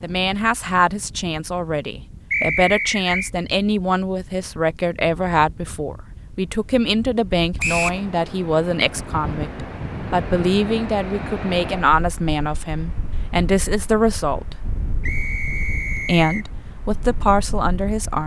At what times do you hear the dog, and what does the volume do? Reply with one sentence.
You can't hear the dog here.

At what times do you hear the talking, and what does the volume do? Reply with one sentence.
You can hear the talking from 0.0 to 14.6 s, at a steady volume; and briefly from 15.9 to 18.2 s.